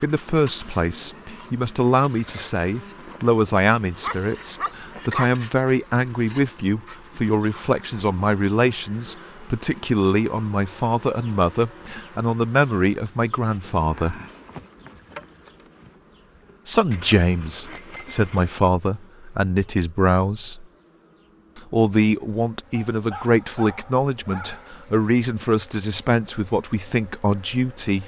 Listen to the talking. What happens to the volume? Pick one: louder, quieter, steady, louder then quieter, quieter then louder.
steady.